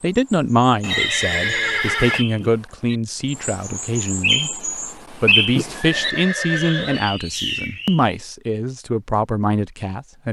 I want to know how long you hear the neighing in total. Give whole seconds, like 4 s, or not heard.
3 s.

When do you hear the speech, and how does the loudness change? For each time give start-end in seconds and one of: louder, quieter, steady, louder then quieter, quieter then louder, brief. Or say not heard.
0.0-10.2 steady.